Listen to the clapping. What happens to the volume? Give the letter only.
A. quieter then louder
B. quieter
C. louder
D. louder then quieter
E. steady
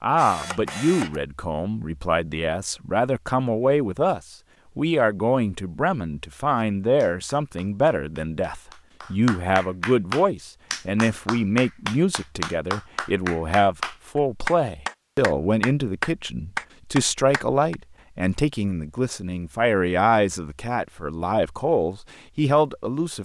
C.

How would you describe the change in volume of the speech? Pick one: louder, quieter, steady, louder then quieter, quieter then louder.
steady.